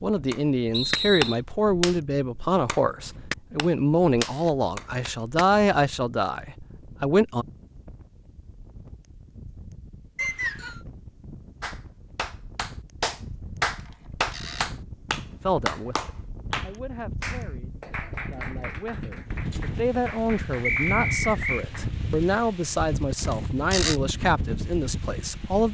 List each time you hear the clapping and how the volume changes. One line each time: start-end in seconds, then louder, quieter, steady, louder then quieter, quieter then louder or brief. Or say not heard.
0.1-5.5 quieter then louder
11.6-21.9 quieter.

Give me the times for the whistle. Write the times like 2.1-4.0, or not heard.
0.7-1.4, 10.2-10.8, 20.6-21.6.